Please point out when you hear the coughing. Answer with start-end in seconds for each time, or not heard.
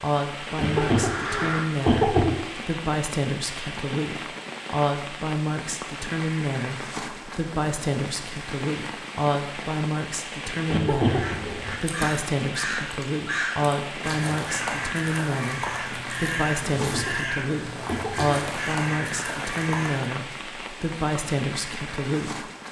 0.6-2.4, 10.7-11.6, 16.8-18.4.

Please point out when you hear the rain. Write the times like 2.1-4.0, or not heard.
0.0-22.6.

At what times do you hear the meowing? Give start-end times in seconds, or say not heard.
not heard.